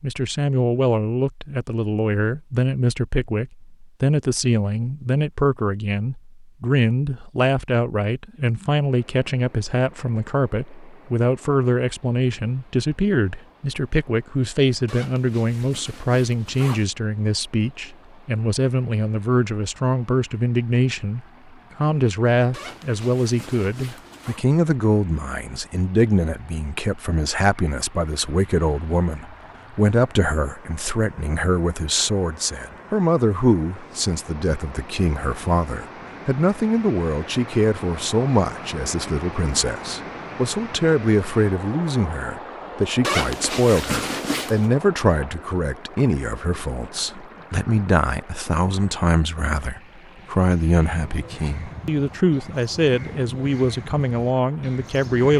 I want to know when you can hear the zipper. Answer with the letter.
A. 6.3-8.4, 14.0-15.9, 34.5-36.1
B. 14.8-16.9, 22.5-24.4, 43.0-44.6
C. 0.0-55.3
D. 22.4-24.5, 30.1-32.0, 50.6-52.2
B.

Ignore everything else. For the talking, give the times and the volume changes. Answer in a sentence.
You can hear the talking from 0.0 to 55.3 s, at a steady volume.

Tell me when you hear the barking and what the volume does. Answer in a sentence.
The barking can't be heard in this clip.